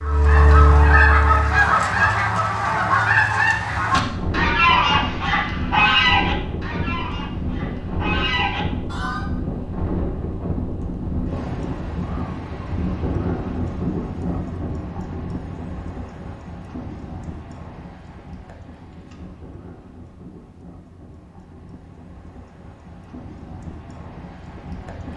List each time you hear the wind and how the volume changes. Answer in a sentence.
The wind can be heard from 3.9 to 25.1 s, getting quieter.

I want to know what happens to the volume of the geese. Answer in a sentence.
The volume of the geese goes down.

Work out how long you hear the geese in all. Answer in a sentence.
The geese can be heard for 9 seconds in total.